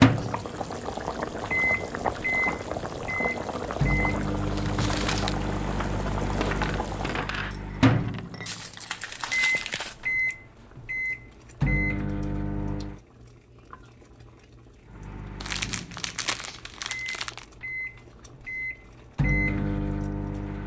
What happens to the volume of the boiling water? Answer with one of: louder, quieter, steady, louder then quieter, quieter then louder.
quieter.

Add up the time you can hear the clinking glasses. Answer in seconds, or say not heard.
2 s.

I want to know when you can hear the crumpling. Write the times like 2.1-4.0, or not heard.
4.5-5.3, 8.4-10.3, 15.4-17.4.